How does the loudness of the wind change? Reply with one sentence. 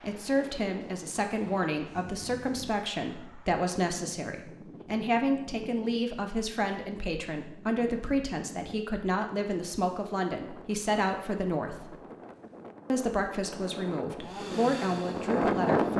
The volume of the wind goes up.